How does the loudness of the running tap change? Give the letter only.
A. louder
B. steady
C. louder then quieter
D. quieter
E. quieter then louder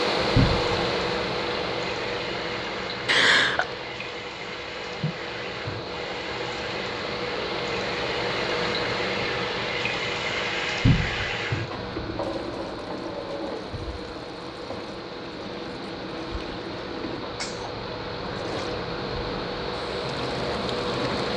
C.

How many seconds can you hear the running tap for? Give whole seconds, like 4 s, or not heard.
21 s.